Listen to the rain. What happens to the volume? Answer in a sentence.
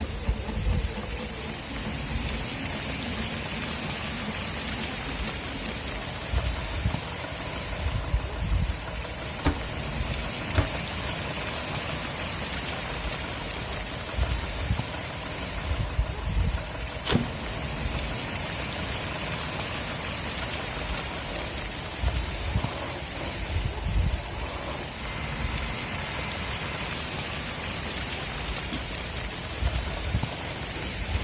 The loudness of the rain stays about the same.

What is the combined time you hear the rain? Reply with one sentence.
You can hear the rain for 31 seconds altogether.